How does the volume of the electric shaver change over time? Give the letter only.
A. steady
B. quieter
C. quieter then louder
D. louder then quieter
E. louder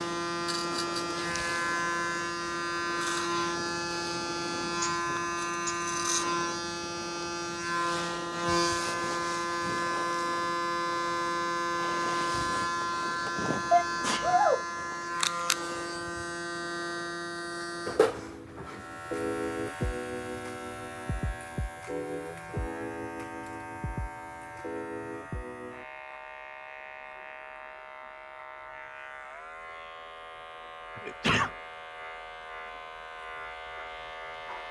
B.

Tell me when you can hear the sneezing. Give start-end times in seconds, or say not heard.
4.8-5.8, 13.2-14.7, 30.9-31.5.